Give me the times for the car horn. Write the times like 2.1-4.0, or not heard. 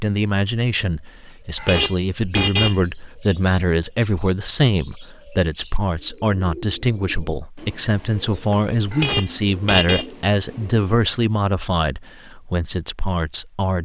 1.6-2.8, 8.9-10.1.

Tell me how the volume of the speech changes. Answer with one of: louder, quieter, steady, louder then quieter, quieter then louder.
steady.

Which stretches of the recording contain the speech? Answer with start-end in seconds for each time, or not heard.
0.0-13.8.